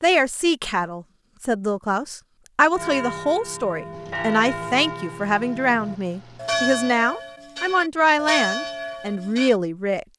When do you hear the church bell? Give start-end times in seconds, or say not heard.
2.7-9.6.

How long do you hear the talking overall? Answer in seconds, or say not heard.
10 s.